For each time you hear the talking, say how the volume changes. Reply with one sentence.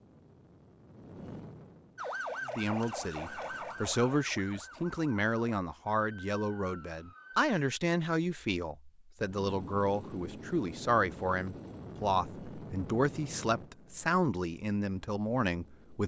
The talking can be heard from 2.5 to 16.0 s, at a steady volume.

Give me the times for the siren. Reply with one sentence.
You can hear the siren from 1.9 to 7.5 s.